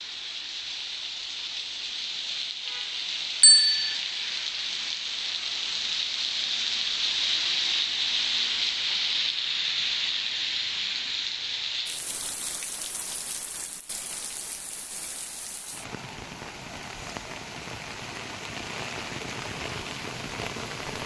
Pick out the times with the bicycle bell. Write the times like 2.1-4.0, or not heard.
3.4-4.0.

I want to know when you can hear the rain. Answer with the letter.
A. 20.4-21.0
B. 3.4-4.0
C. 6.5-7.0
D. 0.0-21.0
D.